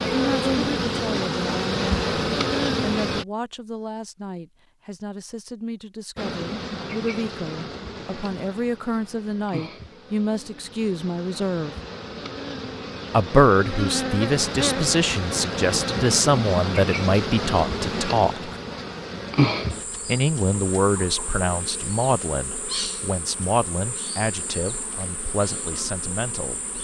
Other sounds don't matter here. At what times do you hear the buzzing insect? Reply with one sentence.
The buzzing insect can be heard from 0.0 to 3.2 s and from 6.2 to 26.7 s.